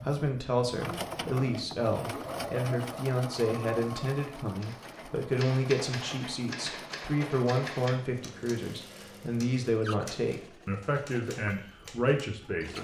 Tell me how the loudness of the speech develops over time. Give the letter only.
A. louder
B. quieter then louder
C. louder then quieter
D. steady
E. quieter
D.